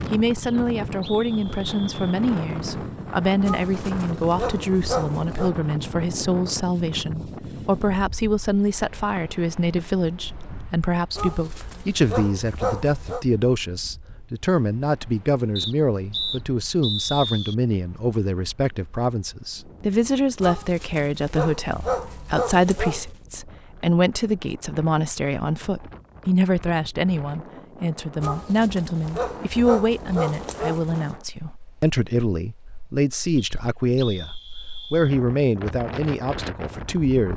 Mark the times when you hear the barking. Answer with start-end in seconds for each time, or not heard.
3.4-5.5, 11.2-13.2, 20.4-23.1, 28.2-31.0.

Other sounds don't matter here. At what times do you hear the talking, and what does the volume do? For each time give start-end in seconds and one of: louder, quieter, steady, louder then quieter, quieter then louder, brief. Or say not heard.
0.1-34.3 steady
34.9-37.3 brief.